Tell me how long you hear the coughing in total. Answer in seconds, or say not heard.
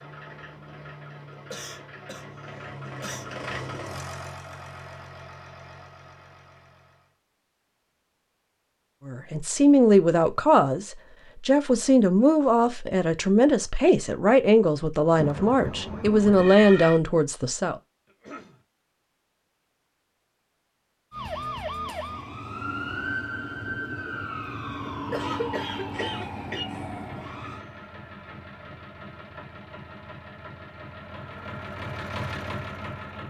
4 s.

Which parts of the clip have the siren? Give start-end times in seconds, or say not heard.
15.1-17.0, 21.1-27.6.